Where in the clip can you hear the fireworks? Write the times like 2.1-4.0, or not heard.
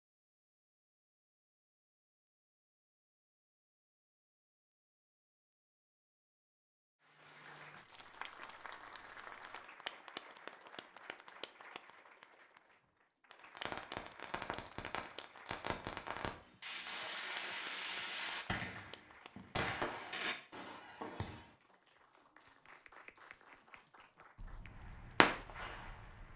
13.4-21.4, 24.4-26.3.